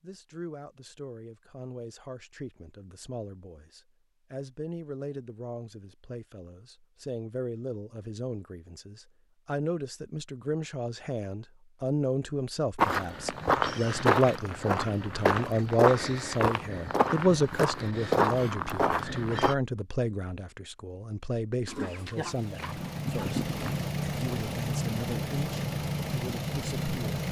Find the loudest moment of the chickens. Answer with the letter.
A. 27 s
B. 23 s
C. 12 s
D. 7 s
B.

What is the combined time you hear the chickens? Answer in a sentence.
The chickens can be heard for 2 seconds in total.